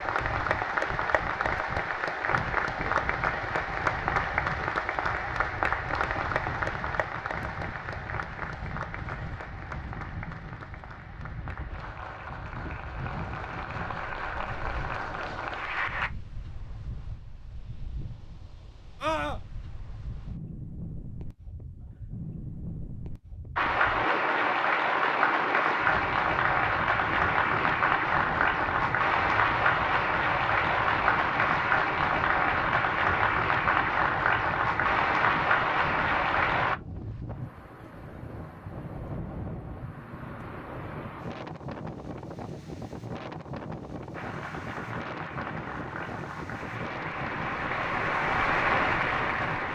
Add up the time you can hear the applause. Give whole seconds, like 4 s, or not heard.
35 s.